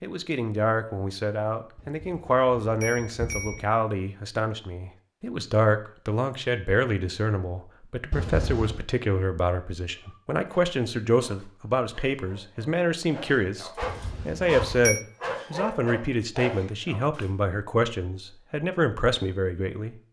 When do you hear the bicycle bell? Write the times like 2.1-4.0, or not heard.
1.8-3.6, 8.1-8.8, 13.8-15.1.